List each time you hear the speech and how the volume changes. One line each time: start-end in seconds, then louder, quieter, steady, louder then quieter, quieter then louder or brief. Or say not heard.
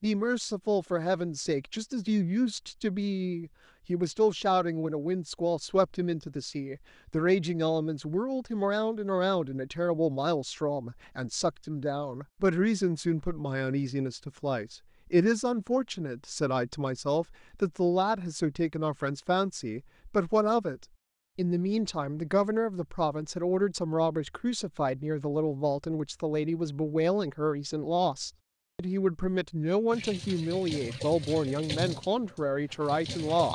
0.0-33.5 steady.